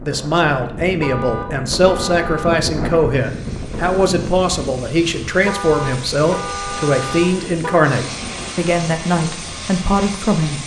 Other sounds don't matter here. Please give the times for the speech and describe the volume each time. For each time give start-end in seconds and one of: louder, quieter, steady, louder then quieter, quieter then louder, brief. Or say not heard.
0.0-10.6 steady.